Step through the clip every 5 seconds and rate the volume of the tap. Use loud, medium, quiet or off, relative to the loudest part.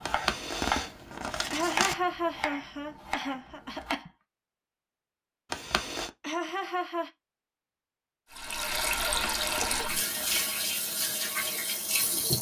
off, loud, loud.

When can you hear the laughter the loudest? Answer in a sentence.
The loudest moment of the laughter is at 2 seconds.